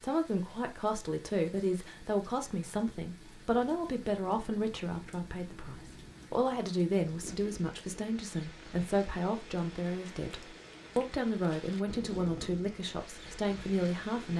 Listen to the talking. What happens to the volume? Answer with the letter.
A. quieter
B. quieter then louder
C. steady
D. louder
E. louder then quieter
C.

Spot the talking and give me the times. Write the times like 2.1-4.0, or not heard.
0.0-14.3.